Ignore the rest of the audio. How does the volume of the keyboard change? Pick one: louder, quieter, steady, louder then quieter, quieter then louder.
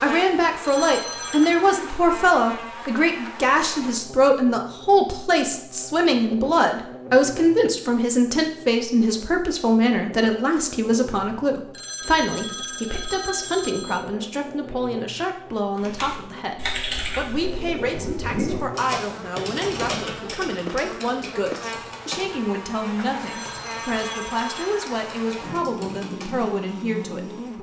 quieter.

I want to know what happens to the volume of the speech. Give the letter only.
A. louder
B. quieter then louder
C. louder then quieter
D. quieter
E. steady
D.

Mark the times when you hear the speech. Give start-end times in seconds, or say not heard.
0.0-27.3.